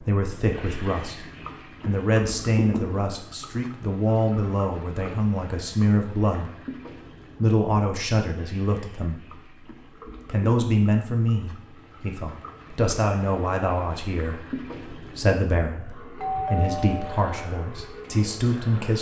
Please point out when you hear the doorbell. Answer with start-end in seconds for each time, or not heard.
16.1-17.5.